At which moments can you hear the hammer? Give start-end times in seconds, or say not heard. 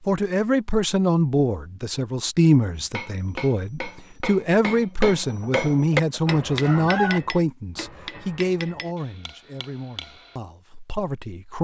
2.8-10.3.